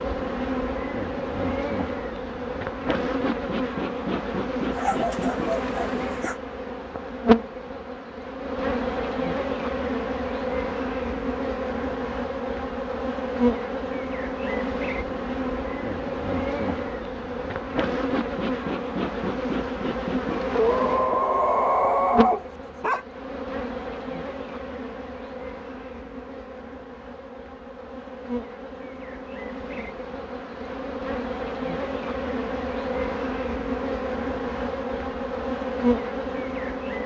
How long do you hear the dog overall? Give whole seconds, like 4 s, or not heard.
4 s.